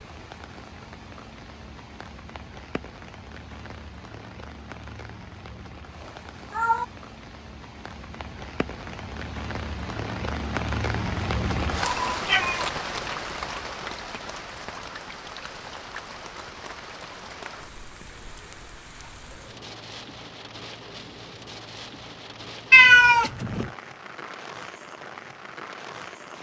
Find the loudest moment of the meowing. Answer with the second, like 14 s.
23 s.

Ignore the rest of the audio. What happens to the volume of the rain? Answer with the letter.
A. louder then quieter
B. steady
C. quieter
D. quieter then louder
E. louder
A.